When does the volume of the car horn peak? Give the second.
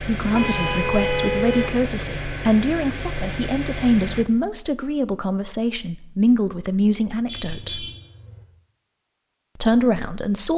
1 s.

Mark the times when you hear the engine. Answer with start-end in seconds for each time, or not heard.
0.0-4.2.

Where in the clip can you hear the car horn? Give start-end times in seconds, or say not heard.
0.3-1.8, 7.2-8.4.